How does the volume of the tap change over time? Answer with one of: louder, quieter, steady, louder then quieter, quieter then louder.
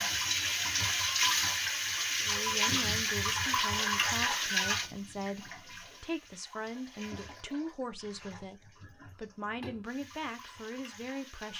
quieter.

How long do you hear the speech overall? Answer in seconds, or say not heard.
9 s.